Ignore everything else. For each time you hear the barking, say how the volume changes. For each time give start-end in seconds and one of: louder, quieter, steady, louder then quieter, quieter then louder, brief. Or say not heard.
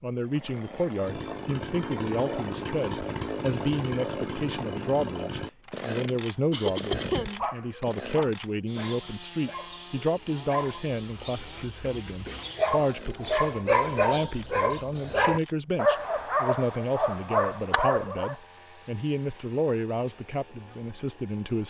6.7-18.4 louder.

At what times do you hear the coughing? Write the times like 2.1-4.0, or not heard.
6.5-7.8.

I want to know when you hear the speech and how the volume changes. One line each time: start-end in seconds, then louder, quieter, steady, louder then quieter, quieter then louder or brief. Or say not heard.
0.0-21.6 steady.